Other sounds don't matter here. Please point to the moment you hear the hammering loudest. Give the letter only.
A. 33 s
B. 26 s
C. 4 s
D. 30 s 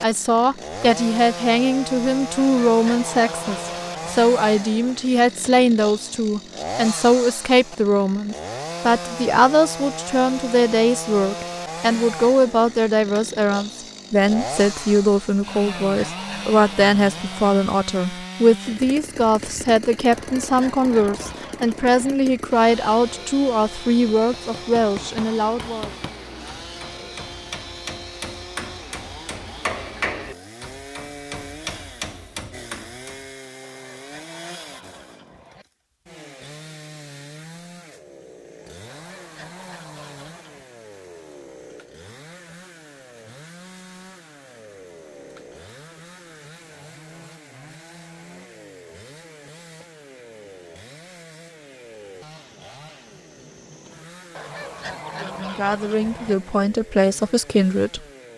D.